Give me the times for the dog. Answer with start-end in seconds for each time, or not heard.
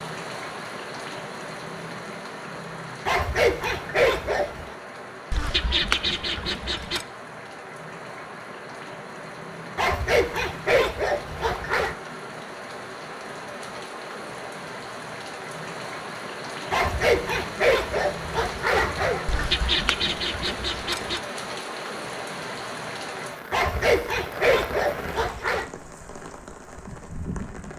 3.0-4.8, 9.8-11.9, 16.7-19.2, 23.5-25.7.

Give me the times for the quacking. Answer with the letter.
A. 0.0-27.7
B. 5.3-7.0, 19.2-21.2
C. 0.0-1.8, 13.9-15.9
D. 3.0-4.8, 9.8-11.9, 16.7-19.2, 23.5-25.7
B.